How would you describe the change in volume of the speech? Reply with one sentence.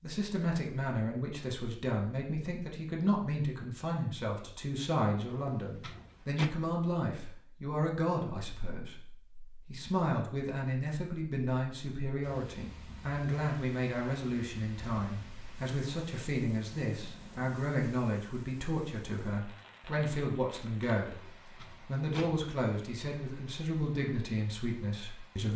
The loudness of the speech stays about the same.